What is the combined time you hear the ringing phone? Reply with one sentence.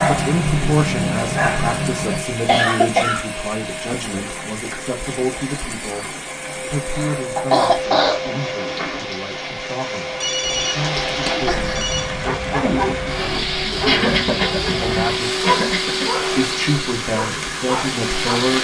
You can hear the ringing phone for 2 seconds altogether.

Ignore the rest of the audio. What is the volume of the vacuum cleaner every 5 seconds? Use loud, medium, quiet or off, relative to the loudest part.
medium, medium, loud, loud.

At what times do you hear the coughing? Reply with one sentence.
You can hear the coughing from 2.1 to 3.4 s, from 6.9 to 8.8 s and from 13.8 to 16.1 s.